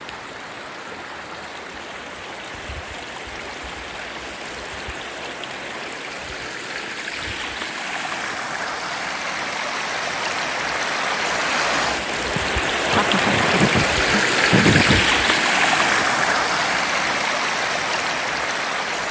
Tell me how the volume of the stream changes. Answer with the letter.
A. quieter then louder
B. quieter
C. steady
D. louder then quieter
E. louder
E.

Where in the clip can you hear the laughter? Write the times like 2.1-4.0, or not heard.
12.3-15.1.